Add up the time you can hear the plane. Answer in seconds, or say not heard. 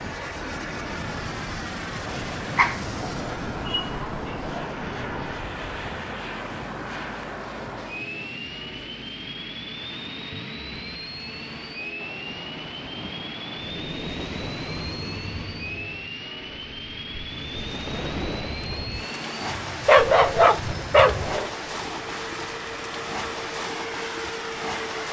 25 s.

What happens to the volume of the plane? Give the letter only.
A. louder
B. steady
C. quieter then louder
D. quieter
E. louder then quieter
B.